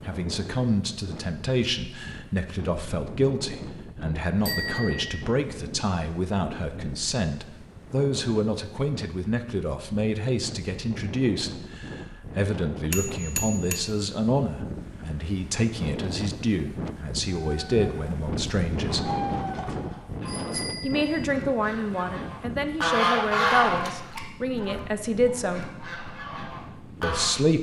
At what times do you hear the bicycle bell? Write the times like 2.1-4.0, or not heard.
4.4-5.2, 12.9-13.8, 18.7-21.2.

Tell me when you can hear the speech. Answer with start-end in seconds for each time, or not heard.
0.0-19.1, 20.8-25.8, 27.0-27.5.